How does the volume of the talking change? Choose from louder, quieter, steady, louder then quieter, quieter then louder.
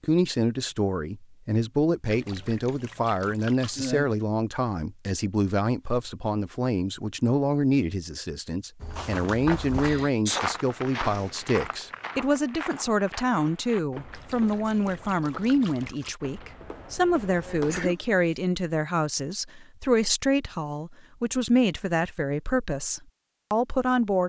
steady.